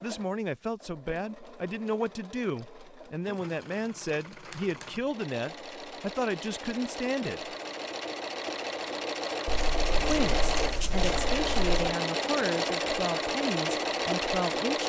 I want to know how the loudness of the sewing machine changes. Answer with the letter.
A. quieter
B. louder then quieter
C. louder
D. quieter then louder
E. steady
C.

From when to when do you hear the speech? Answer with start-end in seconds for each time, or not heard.
0.0-7.5, 10.0-14.8.